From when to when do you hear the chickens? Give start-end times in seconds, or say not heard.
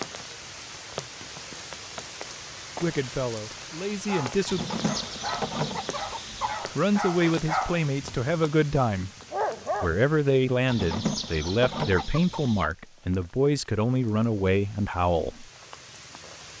4.5-6.7, 10.7-12.7.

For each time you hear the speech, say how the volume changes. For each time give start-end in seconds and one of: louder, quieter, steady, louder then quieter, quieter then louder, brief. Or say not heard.
2.8-4.6 brief
6.8-9.1 brief
9.8-15.4 steady.